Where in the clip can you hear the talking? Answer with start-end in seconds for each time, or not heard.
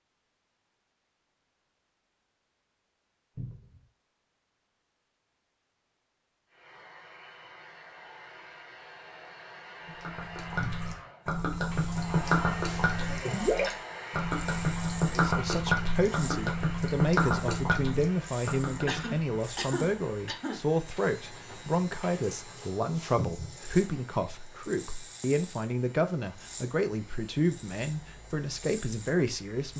15.1-29.7.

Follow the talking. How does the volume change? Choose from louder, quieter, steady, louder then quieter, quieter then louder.
steady.